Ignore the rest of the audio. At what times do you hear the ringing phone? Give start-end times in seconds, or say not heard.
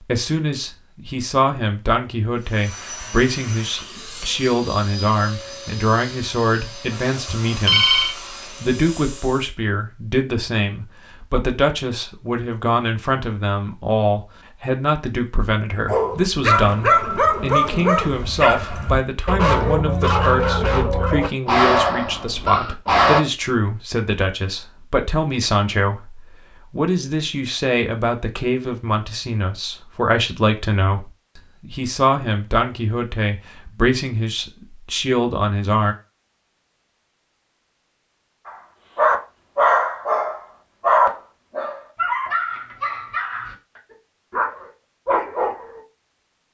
7.2-8.2.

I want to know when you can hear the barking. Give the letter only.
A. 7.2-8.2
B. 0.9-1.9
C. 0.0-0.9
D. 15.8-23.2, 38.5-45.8
D.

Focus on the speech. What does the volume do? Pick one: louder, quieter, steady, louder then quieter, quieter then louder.
steady.